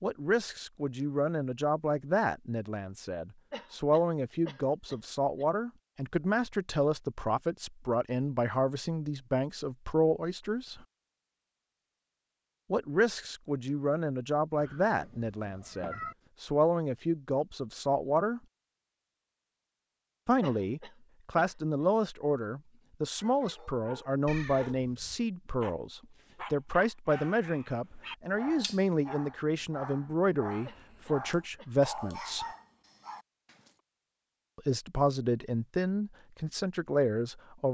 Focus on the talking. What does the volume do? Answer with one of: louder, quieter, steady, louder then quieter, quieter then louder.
steady.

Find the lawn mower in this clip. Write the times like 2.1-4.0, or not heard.
not heard.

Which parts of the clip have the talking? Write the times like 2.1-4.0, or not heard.
0.0-10.8, 12.7-18.4, 20.2-32.5, 34.5-37.6.